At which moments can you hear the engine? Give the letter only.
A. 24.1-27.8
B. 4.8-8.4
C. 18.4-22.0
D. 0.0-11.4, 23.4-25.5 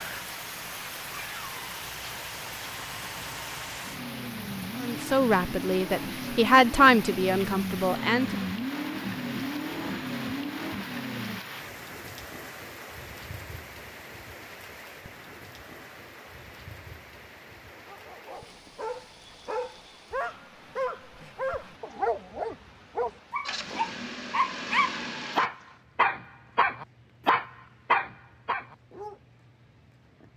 D.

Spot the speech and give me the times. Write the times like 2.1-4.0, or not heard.
4.8-8.4.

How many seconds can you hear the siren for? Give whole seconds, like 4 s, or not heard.
not heard.